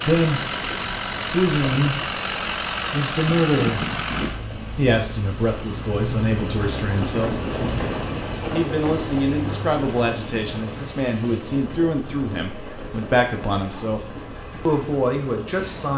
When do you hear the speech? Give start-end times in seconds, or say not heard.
0.0-0.4, 1.3-2.1, 2.9-4.0, 4.8-7.5, 8.5-15.9.